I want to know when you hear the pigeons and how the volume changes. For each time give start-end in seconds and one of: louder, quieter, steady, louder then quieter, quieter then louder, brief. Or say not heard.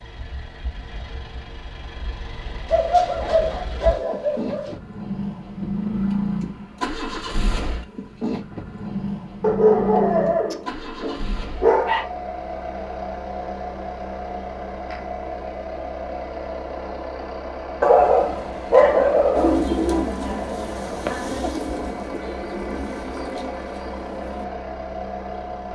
19.4-24.6 quieter.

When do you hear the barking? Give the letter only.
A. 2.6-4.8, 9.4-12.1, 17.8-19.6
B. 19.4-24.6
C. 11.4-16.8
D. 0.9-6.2
A.